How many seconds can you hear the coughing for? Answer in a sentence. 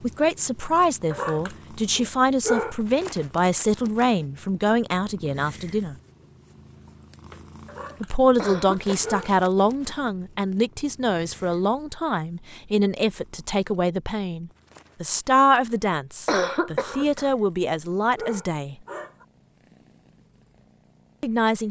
The coughing can be heard for 2 seconds in total.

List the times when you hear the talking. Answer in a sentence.
The talking can be heard from 0.0 to 6.0 s, from 8.0 to 18.8 s and from 21.2 to 21.6 s.